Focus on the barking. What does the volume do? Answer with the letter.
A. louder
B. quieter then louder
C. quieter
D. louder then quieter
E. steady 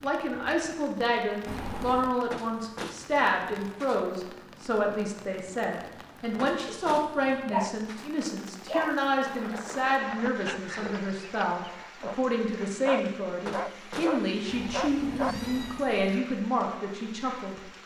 B.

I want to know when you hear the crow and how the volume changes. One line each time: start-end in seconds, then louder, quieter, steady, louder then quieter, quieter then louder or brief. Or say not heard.
not heard.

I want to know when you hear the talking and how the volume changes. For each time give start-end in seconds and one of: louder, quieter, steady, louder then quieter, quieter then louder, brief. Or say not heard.
0.0-17.6 steady.